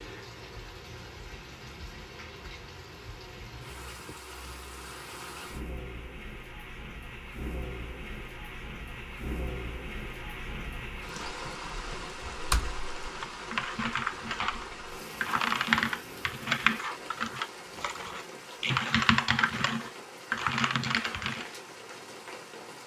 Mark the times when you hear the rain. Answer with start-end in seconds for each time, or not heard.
0.0-22.8.